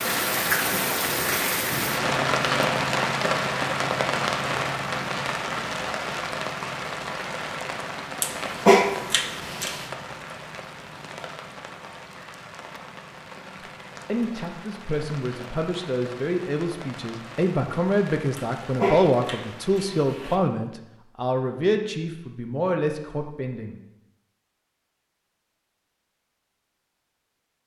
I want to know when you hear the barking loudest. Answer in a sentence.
The volume of the barking peaks at 9 seconds.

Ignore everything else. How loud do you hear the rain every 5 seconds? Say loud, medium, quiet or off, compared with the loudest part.
loud, medium, quiet, quiet, off, off.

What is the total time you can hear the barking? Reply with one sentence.
You can hear the barking for 4 seconds altogether.